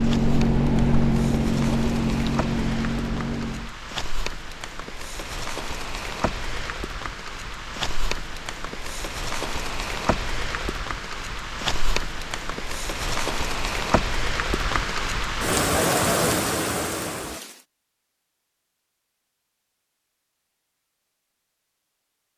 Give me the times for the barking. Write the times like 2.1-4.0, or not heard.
not heard.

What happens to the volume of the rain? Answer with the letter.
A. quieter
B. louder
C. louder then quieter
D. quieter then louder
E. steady
B.